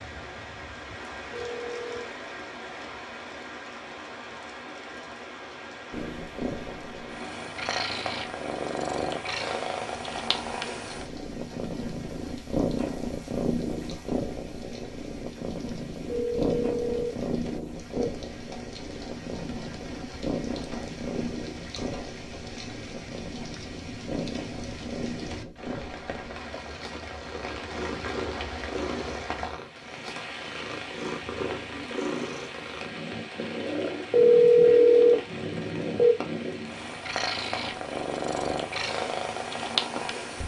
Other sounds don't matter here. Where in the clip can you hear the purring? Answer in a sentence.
You can hear the purring from 5.9 to 40.4 s.